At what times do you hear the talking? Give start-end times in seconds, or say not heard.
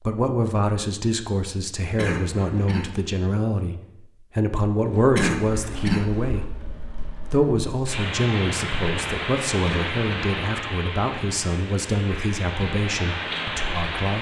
0.0-14.1.